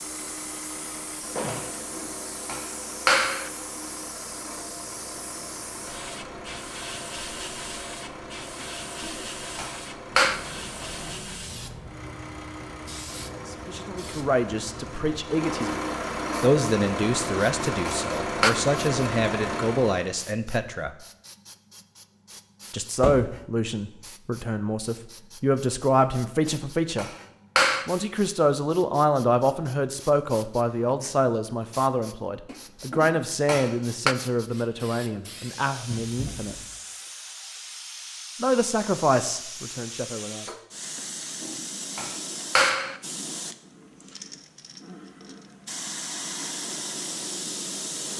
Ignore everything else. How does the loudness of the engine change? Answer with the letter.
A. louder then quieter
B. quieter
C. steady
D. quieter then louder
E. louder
E.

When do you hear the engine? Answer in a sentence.
The engine can be heard from 0.0 to 20.1 s.